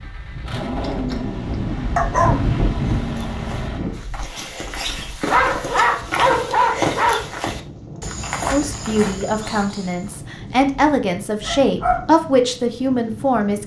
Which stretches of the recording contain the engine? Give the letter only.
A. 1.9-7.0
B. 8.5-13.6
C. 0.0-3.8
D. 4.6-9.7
C.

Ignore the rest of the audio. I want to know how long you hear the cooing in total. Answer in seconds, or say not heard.
not heard.